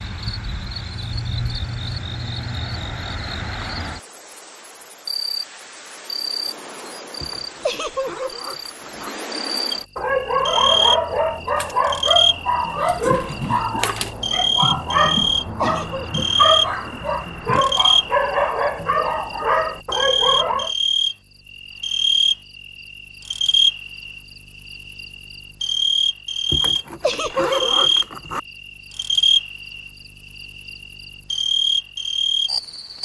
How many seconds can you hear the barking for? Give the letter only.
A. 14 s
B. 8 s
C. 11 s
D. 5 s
C.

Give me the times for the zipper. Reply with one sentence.
You can hear the zipper from 7.2 to 9.1 s and from 26.4 to 28.4 s.